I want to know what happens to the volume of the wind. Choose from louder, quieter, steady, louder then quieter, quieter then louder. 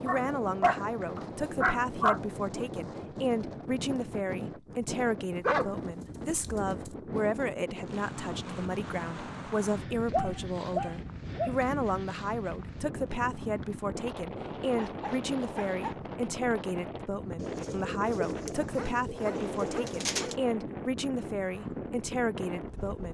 steady.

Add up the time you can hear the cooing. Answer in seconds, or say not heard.
3 s.